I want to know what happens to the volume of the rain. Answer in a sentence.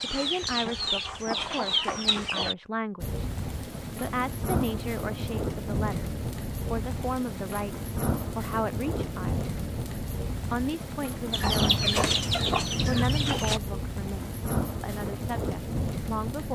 The volume of the rain stays about the same.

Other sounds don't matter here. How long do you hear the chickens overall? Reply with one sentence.
You can hear the chickens for 5 seconds altogether.